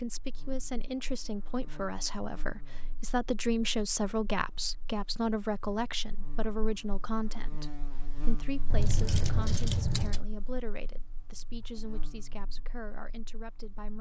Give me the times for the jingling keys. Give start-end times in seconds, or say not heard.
8.7-10.2.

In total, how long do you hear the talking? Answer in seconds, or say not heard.
14 s.